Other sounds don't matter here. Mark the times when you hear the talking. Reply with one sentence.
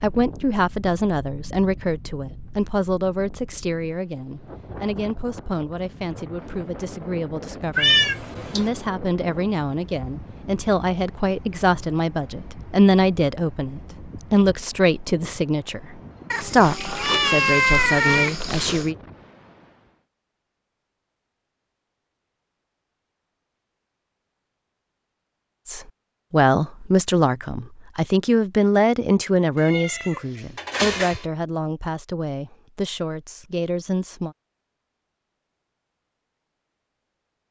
The talking can be heard from 0.0 to 18.9 s and from 25.6 to 34.4 s.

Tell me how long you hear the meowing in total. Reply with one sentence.
You can hear the meowing for 5 seconds altogether.